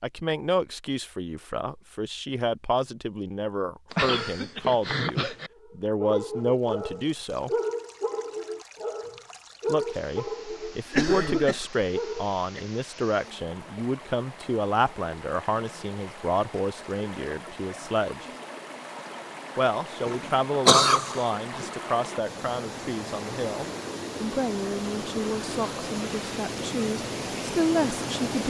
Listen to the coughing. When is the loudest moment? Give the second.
21 s.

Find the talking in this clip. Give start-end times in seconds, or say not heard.
0.0-7.5, 9.7-18.2, 19.6-28.4.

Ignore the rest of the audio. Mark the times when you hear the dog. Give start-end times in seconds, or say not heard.
5.5-12.3.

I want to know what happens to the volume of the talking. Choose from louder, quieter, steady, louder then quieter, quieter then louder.
steady.